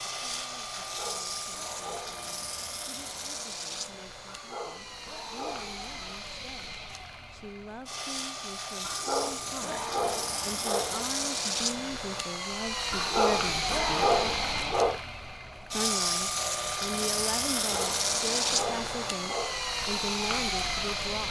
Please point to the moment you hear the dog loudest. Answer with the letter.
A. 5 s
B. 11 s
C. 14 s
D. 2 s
C.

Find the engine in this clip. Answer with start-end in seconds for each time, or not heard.
0.0-21.2.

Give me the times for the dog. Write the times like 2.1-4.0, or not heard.
0.8-2.4, 4.2-6.2, 8.8-11.1, 12.9-15.0, 17.6-19.6.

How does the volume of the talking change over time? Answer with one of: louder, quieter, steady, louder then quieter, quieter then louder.
louder.